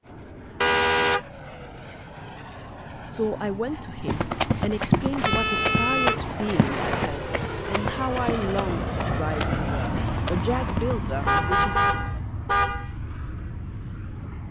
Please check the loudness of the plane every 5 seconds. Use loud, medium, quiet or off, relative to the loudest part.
medium, loud, loud.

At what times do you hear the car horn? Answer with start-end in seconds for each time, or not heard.
0.6-1.2, 5.2-7.1, 11.2-12.9.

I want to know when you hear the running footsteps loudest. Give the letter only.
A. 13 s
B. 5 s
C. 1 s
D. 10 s
B.